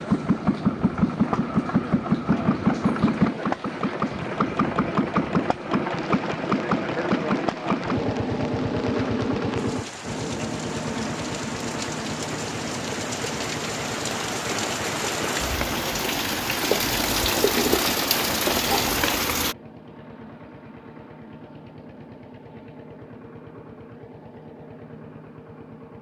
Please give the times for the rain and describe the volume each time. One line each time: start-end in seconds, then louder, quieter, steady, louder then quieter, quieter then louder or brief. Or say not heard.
0.0-19.6 louder.